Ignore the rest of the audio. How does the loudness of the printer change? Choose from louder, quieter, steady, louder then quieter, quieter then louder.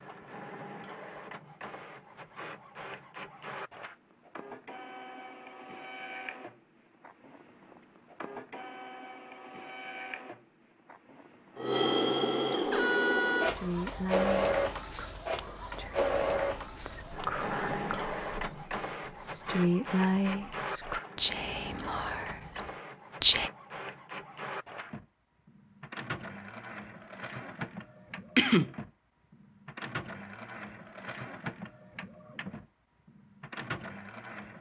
louder then quieter.